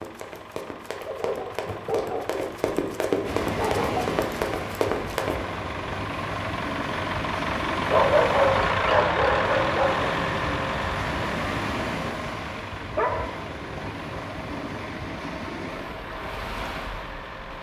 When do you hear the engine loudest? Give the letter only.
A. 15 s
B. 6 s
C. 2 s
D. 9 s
D.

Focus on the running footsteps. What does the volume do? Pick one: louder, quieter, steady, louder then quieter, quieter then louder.
louder.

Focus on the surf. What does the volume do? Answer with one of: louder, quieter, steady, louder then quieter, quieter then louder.
steady.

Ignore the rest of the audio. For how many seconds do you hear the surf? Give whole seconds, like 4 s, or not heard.
14 s.